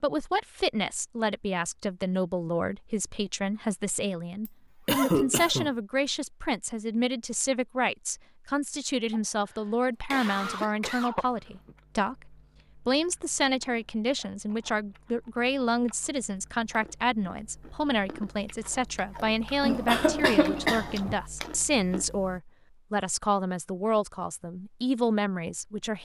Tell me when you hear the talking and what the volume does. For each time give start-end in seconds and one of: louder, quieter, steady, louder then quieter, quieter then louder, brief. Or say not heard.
0.0-25.9 steady.